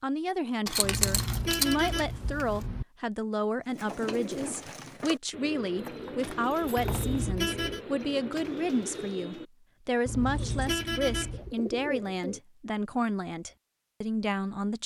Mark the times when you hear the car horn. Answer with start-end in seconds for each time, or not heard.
0.8-2.9, 6.8-7.8, 10.1-11.6.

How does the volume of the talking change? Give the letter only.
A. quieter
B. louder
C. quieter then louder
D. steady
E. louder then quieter
D.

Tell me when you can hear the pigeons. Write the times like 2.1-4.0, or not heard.
3.6-12.4.